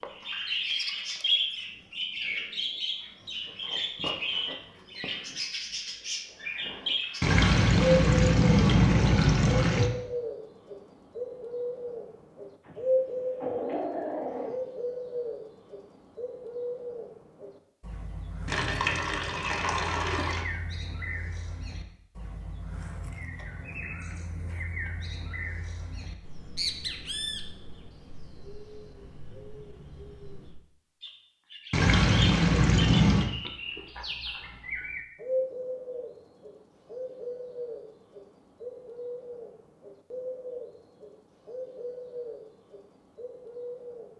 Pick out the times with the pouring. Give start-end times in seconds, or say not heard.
7.2-9.9, 18.4-20.4, 31.7-33.3.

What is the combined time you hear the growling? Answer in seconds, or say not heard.
2 s.